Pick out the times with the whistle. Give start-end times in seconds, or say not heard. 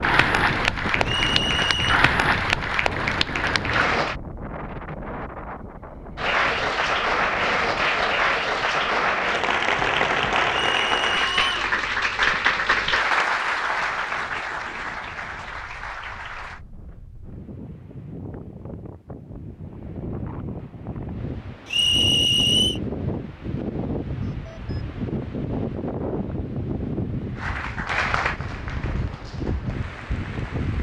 1.0-2.0, 10.7-11.5, 21.6-22.8.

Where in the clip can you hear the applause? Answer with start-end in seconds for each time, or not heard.
0.0-4.2, 6.2-16.6, 27.4-30.7.